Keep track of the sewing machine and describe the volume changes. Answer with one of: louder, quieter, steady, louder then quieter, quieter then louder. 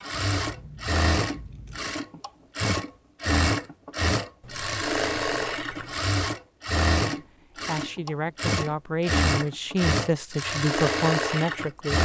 steady.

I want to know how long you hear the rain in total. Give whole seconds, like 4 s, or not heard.
not heard.